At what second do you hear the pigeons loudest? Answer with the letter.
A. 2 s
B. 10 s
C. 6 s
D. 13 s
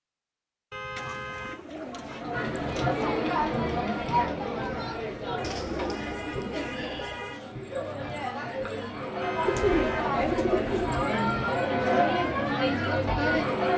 B.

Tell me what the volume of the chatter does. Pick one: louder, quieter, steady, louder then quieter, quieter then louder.
quieter then louder.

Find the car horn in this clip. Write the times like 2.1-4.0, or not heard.
0.7-1.6, 5.3-7.4, 9.2-10.1.